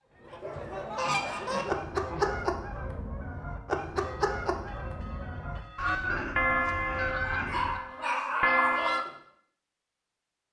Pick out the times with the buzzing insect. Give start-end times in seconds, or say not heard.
not heard.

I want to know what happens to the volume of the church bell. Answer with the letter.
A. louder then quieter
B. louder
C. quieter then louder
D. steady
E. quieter
B.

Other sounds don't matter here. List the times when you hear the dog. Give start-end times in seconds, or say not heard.
0.4-2.4, 7.3-8.9.